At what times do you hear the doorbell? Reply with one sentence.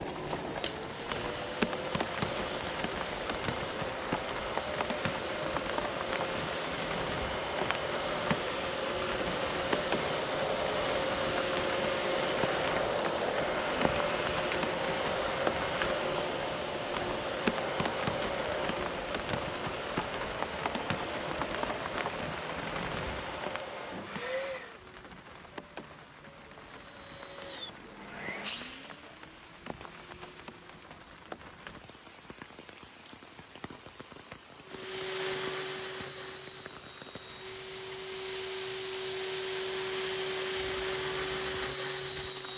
You can't hear the doorbell here.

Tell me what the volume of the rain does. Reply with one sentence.
The volume of the rain goes down.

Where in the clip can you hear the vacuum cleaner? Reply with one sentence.
The vacuum cleaner can be heard from 0.2 to 24.8 s, from 26.8 to 30.9 s and from 34.6 to 42.5 s.